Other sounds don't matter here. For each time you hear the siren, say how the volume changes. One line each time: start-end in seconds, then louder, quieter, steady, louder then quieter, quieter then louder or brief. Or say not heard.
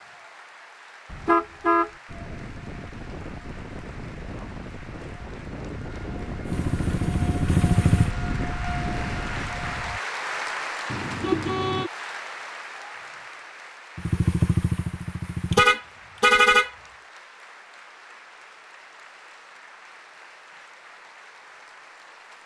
2.0-10.0 louder.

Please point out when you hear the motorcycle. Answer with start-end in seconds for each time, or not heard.
6.4-8.1, 13.9-15.7.